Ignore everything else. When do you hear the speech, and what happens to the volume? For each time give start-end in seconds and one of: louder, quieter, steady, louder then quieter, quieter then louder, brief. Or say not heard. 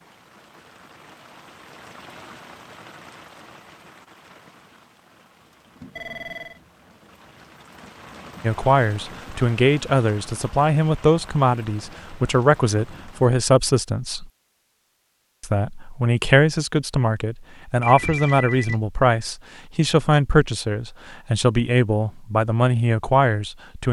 8.4-14.2 steady
15.4-23.8 steady.